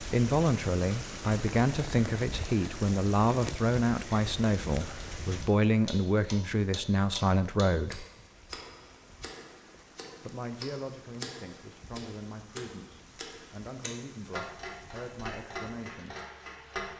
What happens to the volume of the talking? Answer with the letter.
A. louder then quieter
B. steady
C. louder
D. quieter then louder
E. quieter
E.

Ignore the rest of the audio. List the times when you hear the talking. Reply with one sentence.
The talking can be heard from 0.0 to 8.1 s and from 10.2 to 16.1 s.